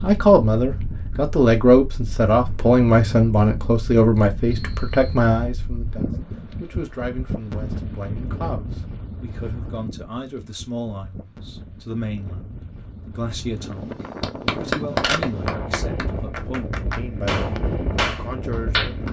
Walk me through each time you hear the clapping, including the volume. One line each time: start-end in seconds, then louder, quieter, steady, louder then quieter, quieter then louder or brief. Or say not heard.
14.2-19.0 quieter then louder.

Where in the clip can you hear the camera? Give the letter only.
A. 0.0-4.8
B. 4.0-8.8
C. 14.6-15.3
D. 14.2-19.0
C.